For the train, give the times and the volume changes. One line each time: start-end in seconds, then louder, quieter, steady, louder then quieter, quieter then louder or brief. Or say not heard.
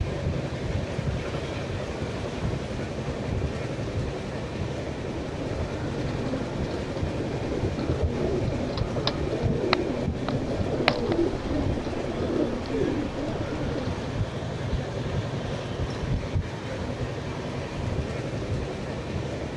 0.0-19.5 steady.